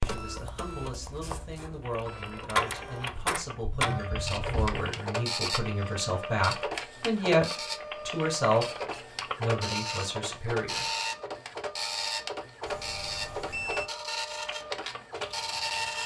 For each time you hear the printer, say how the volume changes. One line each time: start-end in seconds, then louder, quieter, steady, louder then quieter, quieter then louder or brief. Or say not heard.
0.0-16.0 steady.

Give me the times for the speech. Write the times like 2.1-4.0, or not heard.
0.0-7.5, 8.1-10.8.